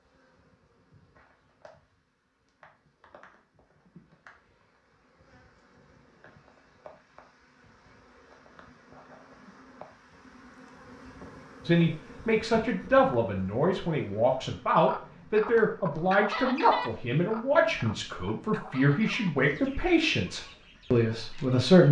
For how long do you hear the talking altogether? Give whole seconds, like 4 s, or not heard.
10 s.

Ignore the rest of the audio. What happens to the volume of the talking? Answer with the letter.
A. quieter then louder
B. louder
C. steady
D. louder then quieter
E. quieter
C.